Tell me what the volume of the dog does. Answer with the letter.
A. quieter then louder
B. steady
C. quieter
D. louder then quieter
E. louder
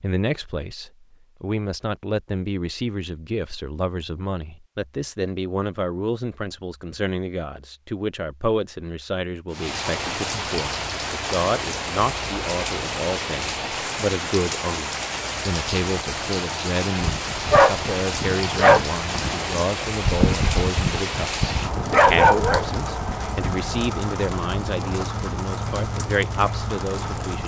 A.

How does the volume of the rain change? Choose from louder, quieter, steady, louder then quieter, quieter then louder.
steady.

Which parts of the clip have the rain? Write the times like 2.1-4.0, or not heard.
9.5-27.4.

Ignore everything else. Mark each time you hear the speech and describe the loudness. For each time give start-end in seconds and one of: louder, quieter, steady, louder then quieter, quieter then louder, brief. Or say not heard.
0.0-27.4 steady.